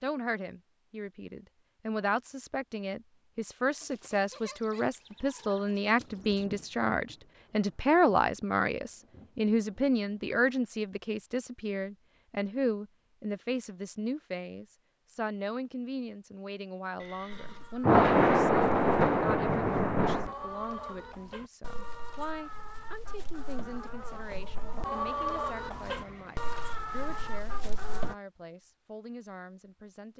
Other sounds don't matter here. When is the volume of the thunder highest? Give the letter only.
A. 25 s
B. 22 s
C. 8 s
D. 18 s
D.